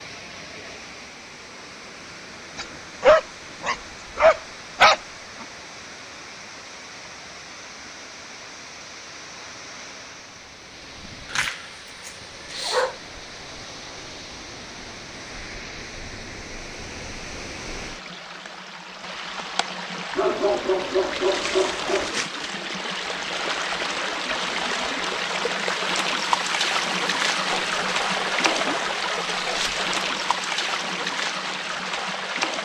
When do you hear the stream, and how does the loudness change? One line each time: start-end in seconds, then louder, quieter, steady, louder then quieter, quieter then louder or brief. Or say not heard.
0.0-32.6 louder.